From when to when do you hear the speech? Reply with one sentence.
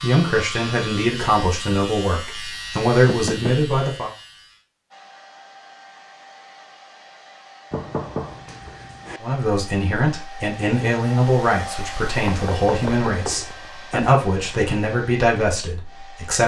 The speech can be heard from 0.0 to 4.1 s and from 9.2 to 16.4 s.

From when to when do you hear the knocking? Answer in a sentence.
The knocking can be heard from 3.0 to 3.6 s, from 7.7 to 9.2 s and from 12.2 to 14.2 s.